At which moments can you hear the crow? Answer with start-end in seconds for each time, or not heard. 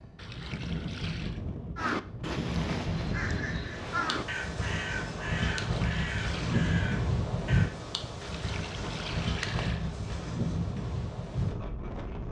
1.8-7.8.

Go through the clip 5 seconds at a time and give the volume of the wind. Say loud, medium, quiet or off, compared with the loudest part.
medium, loud, loud.